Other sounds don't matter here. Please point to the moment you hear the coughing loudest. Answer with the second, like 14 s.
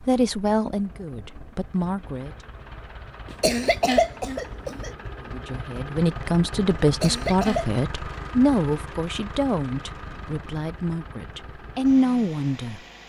4 s.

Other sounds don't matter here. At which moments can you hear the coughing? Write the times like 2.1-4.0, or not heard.
3.2-4.9, 6.8-7.7.